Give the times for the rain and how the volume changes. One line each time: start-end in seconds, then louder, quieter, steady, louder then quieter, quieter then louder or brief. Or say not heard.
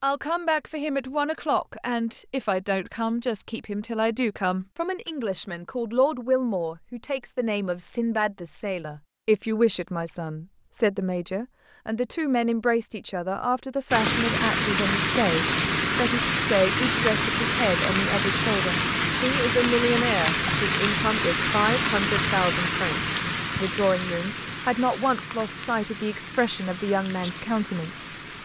13.9-28.3 quieter.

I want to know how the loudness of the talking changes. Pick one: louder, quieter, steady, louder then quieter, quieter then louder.
steady.